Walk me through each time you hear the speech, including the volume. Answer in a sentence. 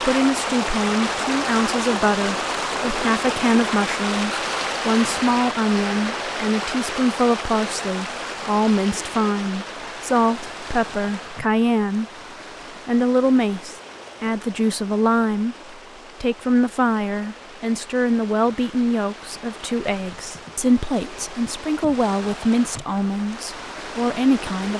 The speech can be heard from 0.0 to 12.1 s, at a steady volume; and from 12.8 to 24.7 s, at a steady volume.